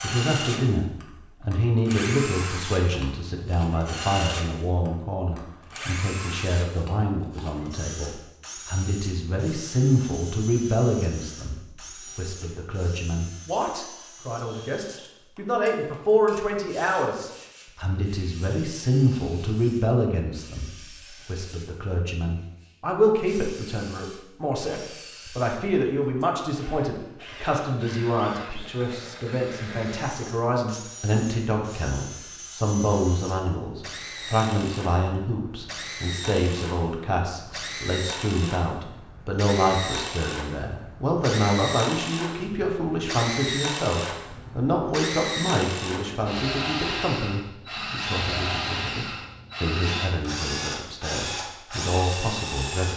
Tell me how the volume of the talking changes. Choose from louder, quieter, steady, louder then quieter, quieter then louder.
steady.